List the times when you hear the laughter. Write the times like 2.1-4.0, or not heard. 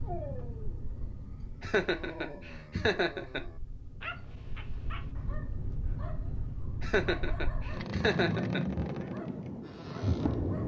1.6-3.4, 6.8-8.6.